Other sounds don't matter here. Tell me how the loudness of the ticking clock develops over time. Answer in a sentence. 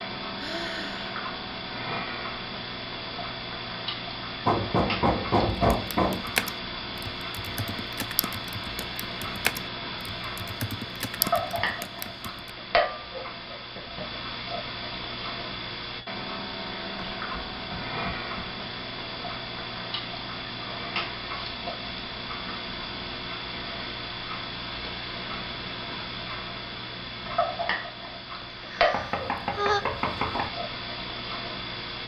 The loudness of the ticking clock stays about the same.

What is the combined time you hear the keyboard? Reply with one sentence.
The keyboard can be heard for 7 seconds in total.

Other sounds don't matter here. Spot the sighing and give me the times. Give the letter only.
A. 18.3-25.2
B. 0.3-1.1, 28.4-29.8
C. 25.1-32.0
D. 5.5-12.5
B.